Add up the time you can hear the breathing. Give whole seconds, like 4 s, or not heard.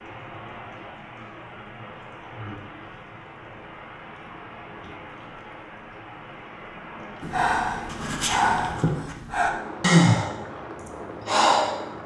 5 s.